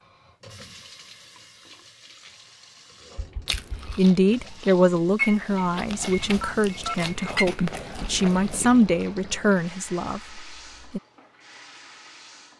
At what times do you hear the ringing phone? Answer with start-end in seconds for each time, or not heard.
3.1-4.1, 6.4-7.0.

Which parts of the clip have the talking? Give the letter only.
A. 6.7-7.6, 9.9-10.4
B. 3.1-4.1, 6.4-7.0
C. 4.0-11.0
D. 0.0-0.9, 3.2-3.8
C.